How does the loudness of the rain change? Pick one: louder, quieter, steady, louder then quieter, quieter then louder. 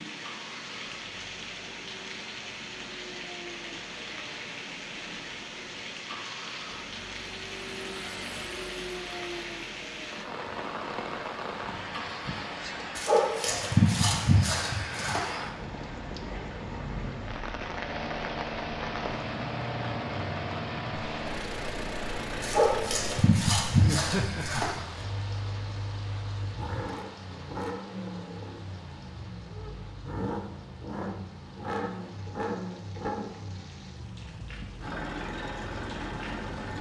quieter.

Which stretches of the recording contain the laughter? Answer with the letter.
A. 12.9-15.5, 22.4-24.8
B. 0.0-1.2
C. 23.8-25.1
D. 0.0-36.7
C.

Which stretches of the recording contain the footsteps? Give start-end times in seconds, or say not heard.
not heard.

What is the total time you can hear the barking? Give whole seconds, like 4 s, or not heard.
5 s.